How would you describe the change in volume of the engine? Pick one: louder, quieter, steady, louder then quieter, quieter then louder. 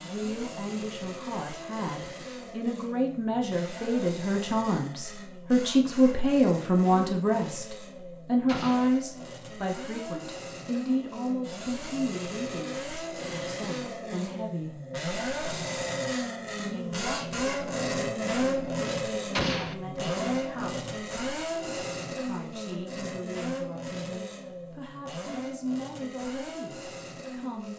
louder then quieter.